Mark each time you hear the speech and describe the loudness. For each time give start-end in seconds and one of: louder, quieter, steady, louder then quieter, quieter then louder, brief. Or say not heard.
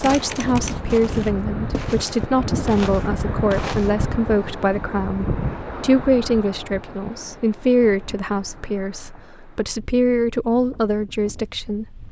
0.0-12.0 steady.